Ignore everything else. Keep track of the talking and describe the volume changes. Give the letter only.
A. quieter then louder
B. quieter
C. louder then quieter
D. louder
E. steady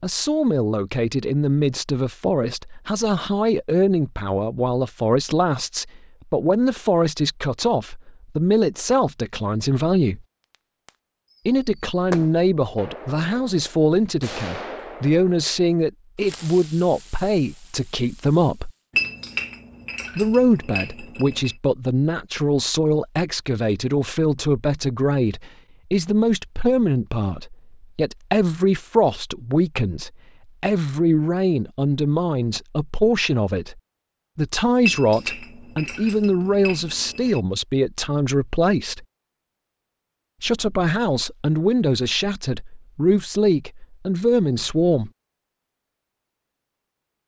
E.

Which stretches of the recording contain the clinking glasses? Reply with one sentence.
The clinking glasses can be heard from 18.9 to 21.6 s and from 34.8 to 37.4 s.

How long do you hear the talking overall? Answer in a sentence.
The talking can be heard for 41 seconds in total.